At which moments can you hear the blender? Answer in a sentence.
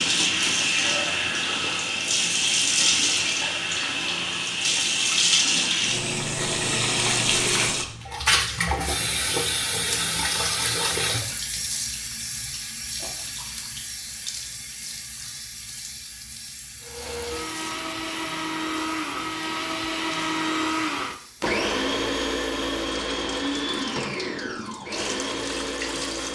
You can hear the blender from 16.8 to 26.2 s.